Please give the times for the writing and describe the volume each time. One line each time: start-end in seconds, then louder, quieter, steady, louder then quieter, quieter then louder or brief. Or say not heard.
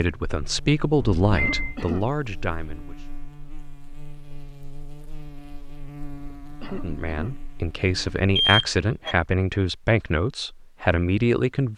not heard.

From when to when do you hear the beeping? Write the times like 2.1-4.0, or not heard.
1.0-1.8, 8.3-9.2.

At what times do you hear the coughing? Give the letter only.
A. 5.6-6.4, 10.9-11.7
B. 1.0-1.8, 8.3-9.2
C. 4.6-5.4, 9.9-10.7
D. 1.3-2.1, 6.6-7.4
D.